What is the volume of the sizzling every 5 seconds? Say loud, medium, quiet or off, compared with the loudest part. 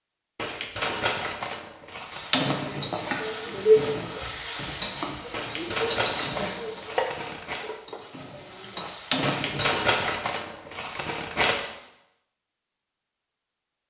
loud, medium, off.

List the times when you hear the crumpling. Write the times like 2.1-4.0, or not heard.
0.3-2.2, 5.3-7.7, 9.2-11.6.